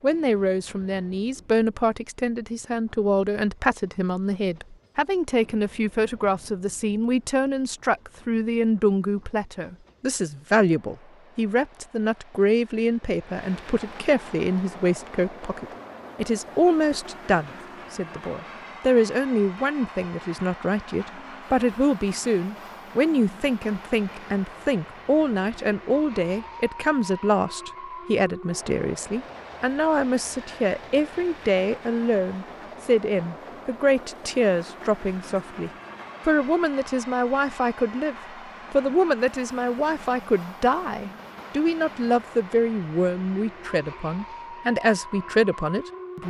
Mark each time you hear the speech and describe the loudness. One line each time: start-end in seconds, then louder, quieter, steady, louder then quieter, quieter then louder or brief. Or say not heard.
0.0-46.2 steady.